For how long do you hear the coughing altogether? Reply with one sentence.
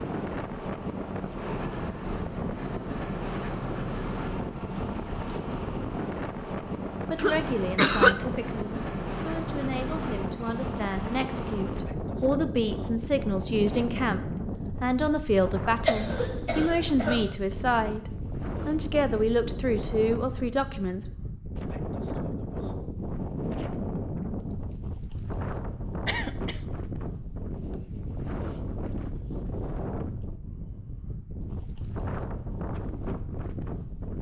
You can hear the coughing for 3 seconds altogether.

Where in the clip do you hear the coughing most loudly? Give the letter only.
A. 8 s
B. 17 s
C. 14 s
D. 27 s
A.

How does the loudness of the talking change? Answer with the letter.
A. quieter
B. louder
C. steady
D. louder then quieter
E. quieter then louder
B.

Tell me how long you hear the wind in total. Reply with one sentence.
You can hear the wind for 34 seconds altogether.